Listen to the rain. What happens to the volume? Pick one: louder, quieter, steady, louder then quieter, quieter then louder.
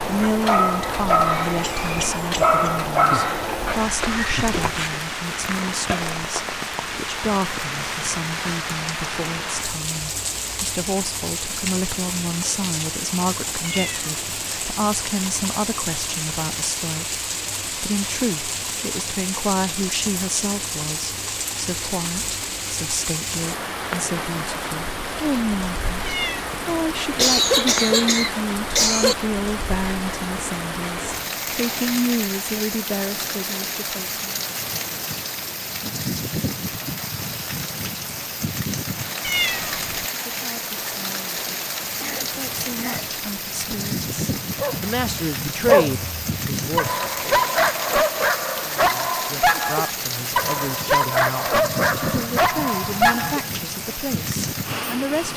steady.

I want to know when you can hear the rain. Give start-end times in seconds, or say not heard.
0.0-55.3.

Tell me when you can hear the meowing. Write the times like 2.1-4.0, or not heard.
13.6-14.4, 26.1-26.9, 39.2-40.0.